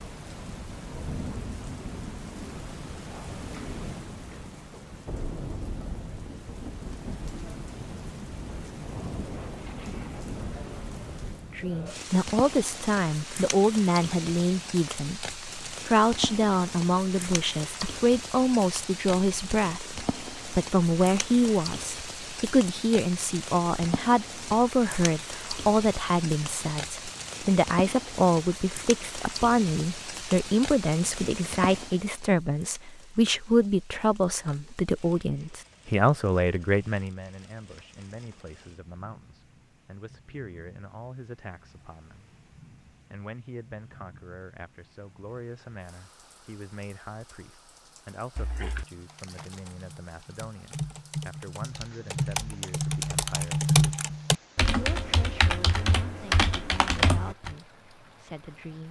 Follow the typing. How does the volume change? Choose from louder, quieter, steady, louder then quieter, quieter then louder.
louder.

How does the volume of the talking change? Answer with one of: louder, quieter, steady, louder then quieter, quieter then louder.
quieter.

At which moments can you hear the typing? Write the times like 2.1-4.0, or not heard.
48.4-57.5.